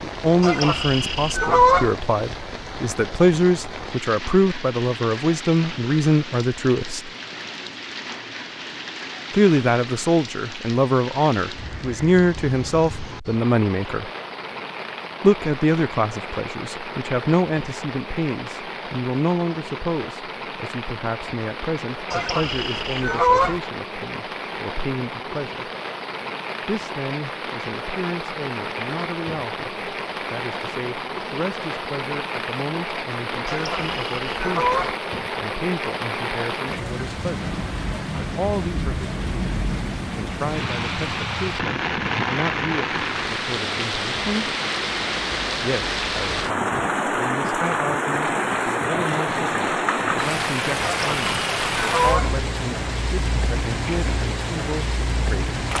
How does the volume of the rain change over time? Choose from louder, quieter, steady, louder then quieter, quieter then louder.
louder.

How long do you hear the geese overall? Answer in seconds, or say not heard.
6 s.